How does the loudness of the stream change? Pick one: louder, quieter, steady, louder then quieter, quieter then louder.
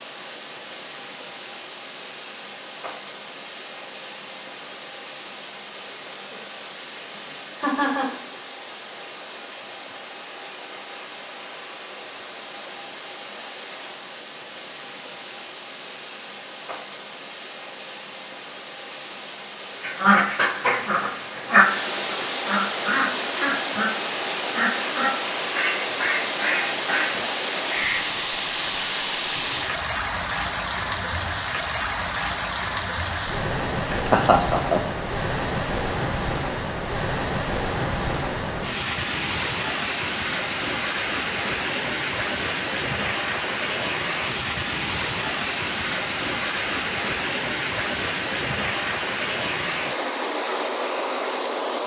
louder.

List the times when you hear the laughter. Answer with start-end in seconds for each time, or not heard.
7.5-8.2, 33.9-34.8.